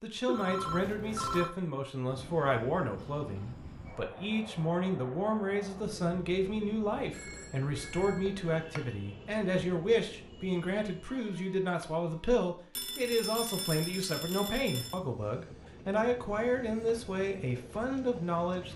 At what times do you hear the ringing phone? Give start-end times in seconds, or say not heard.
0.2-1.5, 7.1-8.9, 12.8-15.0.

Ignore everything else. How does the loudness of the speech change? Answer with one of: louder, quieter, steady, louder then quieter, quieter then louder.
steady.